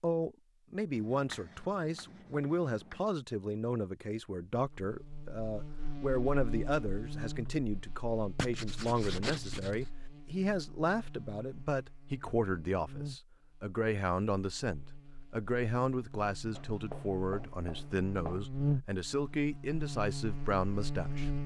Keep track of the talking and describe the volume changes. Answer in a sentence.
The volume of the talking stays about the same.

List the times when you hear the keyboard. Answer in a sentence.
The keyboard can't be heard in this clip.